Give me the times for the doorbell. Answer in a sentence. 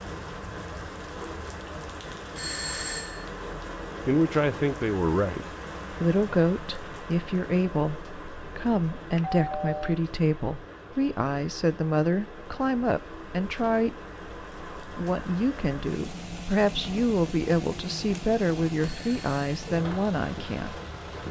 You can hear the doorbell from 2.4 to 3.2 s, from 9.2 to 9.9 s and from 18.8 to 19.4 s.